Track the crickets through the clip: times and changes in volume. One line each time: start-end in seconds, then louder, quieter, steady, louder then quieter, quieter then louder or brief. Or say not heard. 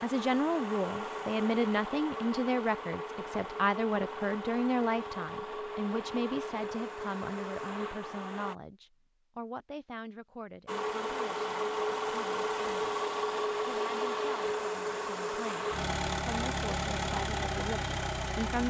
not heard.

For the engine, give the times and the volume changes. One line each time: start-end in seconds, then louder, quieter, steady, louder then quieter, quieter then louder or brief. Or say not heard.
0.0-8.6 steady
10.7-18.6 steady.